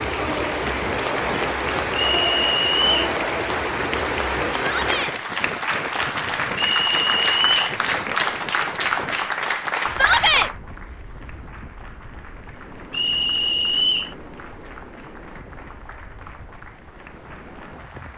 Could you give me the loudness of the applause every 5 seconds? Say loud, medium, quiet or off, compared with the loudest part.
loud, loud, medium, quiet.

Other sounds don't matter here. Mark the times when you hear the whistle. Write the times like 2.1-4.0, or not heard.
2.0-3.1, 6.5-7.8, 12.9-14.2.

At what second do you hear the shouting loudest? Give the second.
10 s.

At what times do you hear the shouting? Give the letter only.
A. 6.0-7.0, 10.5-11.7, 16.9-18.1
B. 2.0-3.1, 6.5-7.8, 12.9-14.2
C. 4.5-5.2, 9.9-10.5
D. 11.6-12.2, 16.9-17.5
C.